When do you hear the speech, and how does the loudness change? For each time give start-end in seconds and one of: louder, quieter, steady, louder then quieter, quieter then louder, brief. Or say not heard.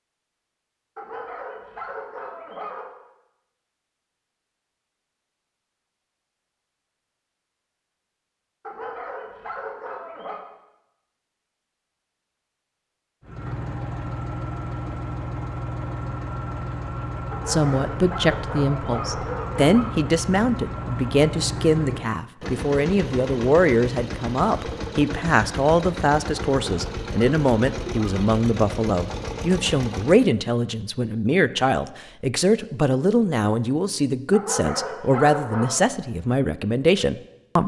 17.4-37.6 steady.